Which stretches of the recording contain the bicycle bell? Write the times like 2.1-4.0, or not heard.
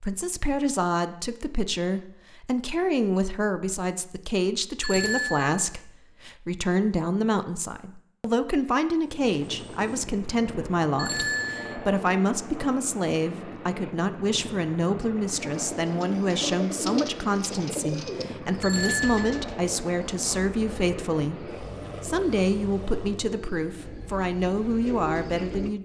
4.8-5.5, 10.9-11.8, 18.6-19.4.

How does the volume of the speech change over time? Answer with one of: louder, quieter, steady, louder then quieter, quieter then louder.
steady.